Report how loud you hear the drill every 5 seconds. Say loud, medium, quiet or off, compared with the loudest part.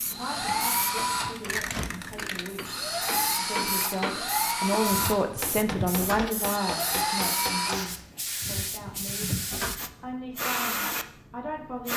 loud, loud, off.